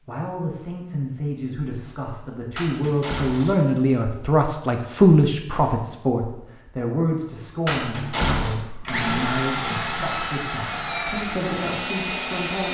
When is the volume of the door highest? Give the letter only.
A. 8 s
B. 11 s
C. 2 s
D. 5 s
A.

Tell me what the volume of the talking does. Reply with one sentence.
The volume of the talking goes up, then down.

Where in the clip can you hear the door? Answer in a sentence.
You can hear the door from 2.5 to 3.6 s and from 7.7 to 8.6 s.